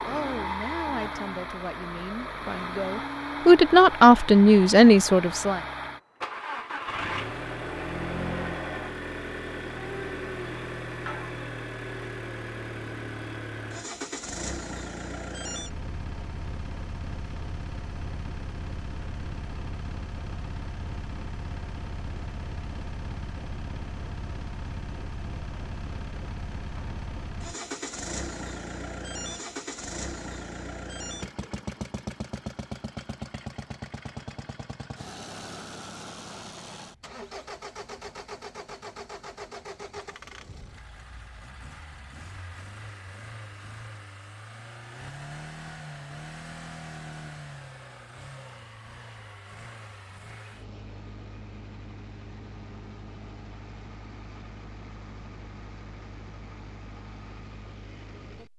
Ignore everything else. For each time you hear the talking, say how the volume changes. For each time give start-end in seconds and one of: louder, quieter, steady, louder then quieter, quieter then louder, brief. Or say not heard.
0.0-5.6 louder.